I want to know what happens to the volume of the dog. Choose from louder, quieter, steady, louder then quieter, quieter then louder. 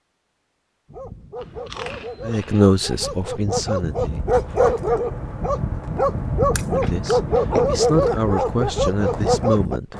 louder.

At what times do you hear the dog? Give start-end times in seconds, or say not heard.
0.8-9.8.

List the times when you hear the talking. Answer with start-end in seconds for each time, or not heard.
2.2-4.4, 6.6-9.9.